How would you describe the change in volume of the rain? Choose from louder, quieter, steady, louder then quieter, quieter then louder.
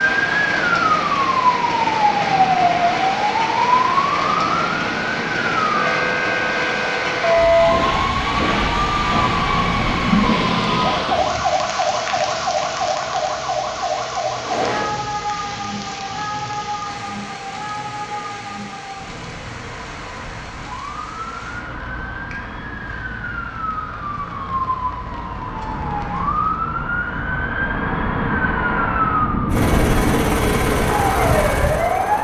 quieter.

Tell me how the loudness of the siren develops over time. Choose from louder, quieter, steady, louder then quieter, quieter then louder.
quieter then louder.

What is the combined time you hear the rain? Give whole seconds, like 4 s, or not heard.
27 s.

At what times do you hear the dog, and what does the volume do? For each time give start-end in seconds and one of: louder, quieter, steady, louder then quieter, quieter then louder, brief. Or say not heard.
not heard.